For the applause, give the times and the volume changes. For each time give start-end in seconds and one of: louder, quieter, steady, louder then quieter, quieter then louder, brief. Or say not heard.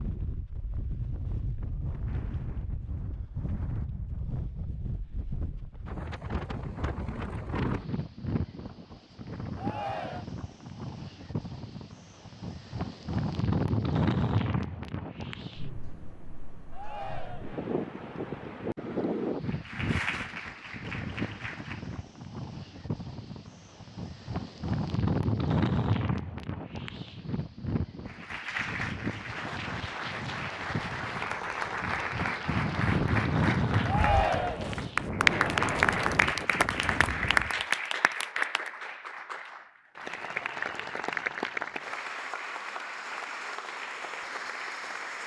19.4-22.0 brief
28.1-45.2 louder then quieter.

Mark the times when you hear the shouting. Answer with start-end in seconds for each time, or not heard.
9.6-10.2, 16.7-17.6, 33.9-34.8.